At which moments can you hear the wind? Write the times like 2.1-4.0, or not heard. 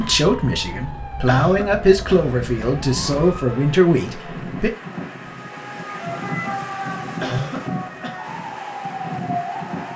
2.0-9.9.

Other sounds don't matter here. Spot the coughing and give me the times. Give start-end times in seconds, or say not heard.
1.2-2.3, 7.2-8.2.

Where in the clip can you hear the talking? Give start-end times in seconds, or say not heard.
0.0-4.7.